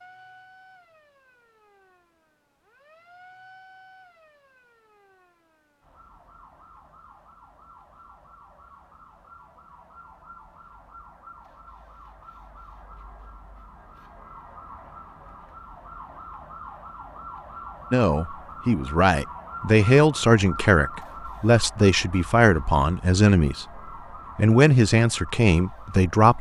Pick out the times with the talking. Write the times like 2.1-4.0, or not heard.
17.9-26.3.